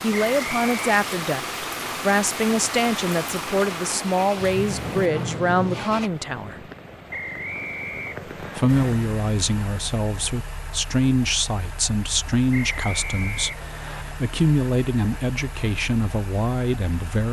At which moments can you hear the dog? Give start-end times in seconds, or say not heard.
not heard.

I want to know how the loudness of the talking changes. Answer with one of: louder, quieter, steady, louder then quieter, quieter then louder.
steady.